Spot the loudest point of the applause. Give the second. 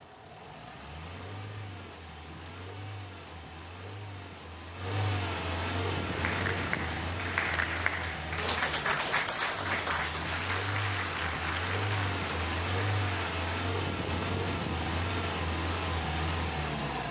9 s.